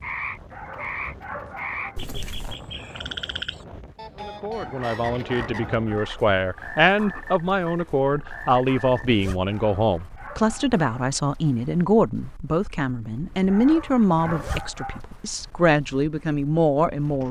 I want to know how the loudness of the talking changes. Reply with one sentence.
The volume of the talking stays about the same.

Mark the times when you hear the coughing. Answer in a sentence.
You can't hear the coughing here.